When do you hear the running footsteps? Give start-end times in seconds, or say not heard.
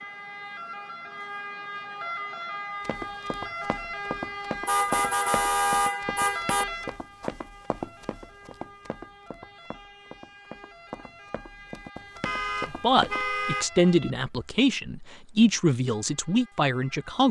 2.8-13.2.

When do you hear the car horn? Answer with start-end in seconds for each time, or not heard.
4.7-6.7, 12.2-13.7.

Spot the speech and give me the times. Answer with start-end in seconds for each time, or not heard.
12.7-17.2.